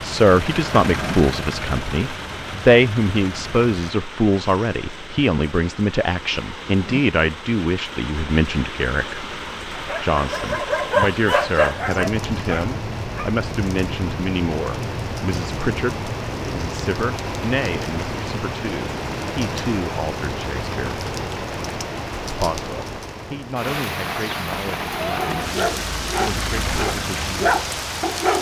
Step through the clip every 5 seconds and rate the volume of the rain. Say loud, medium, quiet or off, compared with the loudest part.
medium, medium, loud, loud, loud, loud.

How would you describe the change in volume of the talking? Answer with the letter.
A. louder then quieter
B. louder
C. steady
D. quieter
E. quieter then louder
D.